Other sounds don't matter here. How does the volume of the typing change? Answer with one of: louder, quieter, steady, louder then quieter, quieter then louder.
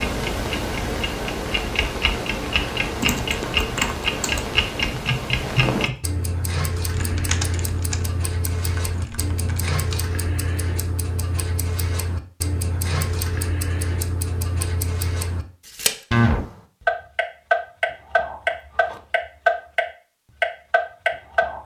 quieter.